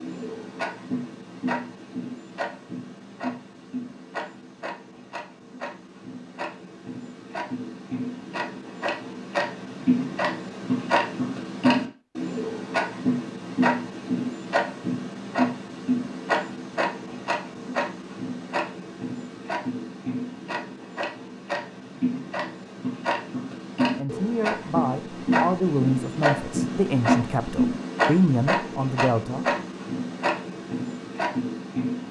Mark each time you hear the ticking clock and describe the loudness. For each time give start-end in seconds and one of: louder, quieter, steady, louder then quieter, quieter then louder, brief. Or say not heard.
0.0-32.0 louder.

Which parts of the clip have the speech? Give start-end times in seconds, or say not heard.
23.9-29.4.